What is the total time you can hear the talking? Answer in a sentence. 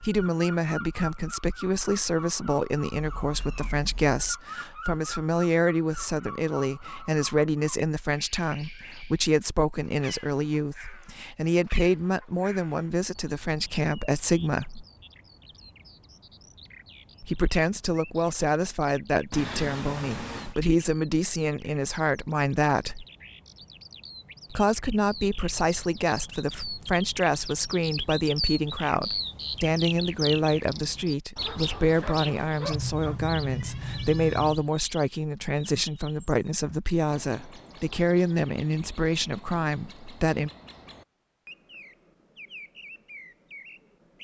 The talking can be heard for 37 seconds in total.